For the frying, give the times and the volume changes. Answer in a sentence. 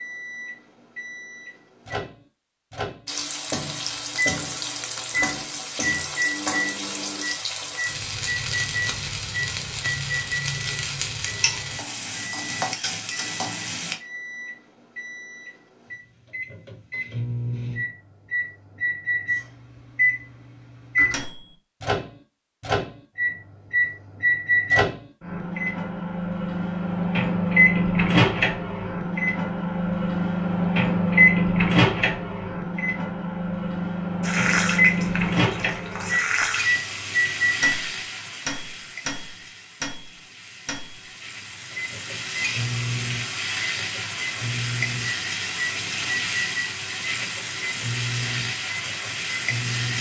You can hear the frying from 3.0 to 14.0 s, at a steady volume; and from 34.2 to 49.9 s, getting quieter then louder.